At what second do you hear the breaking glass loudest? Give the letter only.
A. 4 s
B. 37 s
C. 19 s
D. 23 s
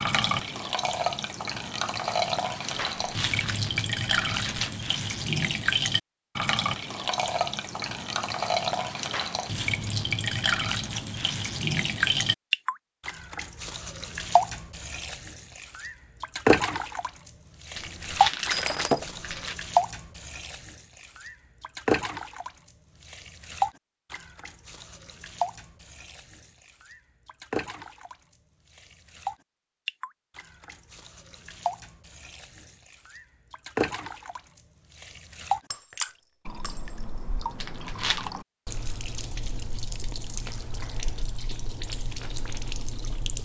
C.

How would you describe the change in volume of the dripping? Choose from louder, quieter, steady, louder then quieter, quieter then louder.
quieter.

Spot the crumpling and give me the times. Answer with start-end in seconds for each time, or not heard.
3.0-4.8, 17.8-19.6, 37.6-38.3.